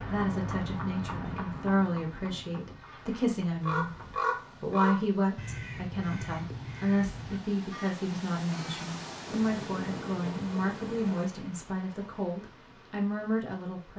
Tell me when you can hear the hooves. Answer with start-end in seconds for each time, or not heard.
0.0-4.2.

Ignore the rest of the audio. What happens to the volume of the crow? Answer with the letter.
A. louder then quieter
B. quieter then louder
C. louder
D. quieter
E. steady
D.